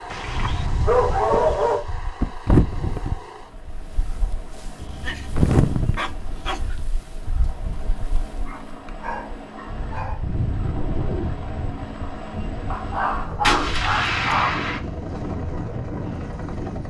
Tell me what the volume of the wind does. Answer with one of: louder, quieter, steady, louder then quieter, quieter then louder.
quieter then louder.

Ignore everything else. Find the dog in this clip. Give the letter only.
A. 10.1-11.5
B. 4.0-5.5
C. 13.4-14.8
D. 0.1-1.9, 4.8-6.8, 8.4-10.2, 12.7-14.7
D.